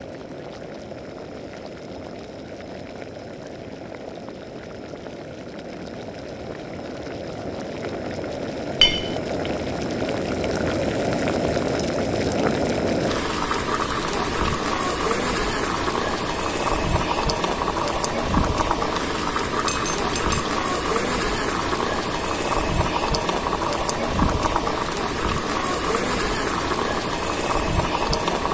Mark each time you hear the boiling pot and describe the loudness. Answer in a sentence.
You can hear the boiling pot from 0.0 to 28.4 s, getting louder.